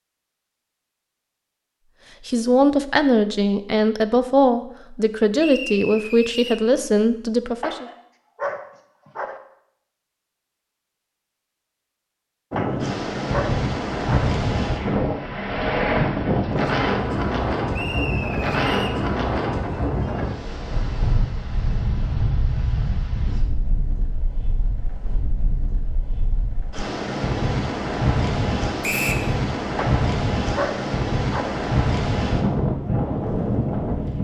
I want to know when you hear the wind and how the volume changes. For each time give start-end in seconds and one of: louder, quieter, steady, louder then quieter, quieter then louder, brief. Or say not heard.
12.5-34.1 quieter then louder.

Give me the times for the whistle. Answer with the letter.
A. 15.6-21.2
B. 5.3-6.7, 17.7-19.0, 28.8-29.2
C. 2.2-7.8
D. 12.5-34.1
B.